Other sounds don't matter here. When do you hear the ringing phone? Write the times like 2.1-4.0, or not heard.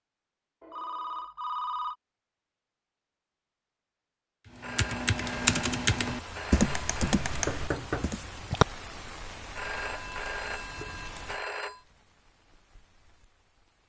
0.6-1.9, 4.6-7.2, 9.6-11.8.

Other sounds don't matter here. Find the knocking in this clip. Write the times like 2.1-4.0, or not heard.
7.5-8.7.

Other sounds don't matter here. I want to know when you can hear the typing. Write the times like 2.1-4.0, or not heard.
4.6-8.2.